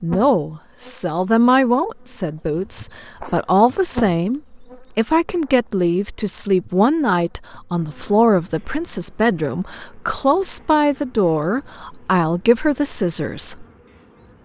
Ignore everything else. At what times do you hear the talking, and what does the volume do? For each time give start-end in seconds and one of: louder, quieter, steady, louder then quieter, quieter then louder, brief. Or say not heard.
0.0-13.7 steady.